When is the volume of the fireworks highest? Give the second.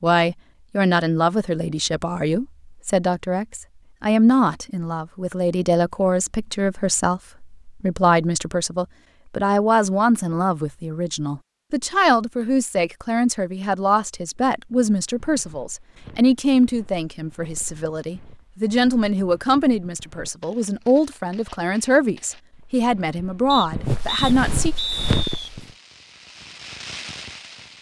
27 s.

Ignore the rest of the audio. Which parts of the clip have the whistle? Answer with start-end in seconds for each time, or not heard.
23.5-25.5.